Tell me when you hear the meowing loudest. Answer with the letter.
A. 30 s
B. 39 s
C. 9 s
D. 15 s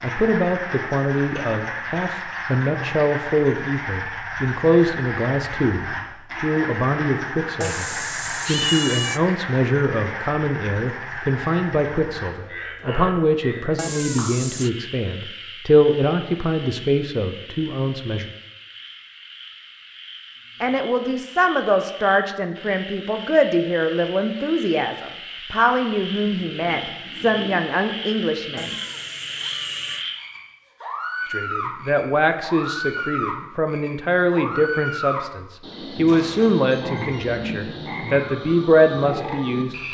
C.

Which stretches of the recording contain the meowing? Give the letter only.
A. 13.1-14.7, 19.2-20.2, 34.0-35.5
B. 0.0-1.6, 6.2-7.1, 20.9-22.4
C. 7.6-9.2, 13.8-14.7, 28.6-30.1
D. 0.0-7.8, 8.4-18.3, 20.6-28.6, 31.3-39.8
C.